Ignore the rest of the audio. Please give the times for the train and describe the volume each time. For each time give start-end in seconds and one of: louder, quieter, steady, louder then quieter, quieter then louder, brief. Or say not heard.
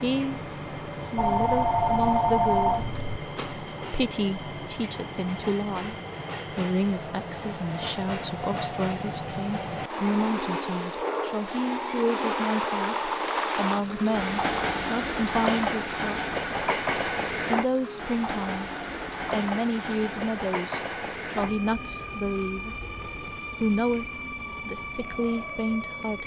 0.0-26.2 louder then quieter.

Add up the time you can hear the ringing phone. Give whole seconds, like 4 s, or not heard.
2 s.